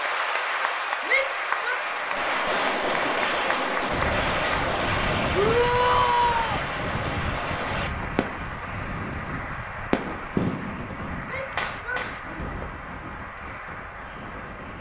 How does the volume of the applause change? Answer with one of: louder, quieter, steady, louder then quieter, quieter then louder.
quieter.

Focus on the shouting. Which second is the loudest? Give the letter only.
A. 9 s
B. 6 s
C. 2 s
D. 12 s
B.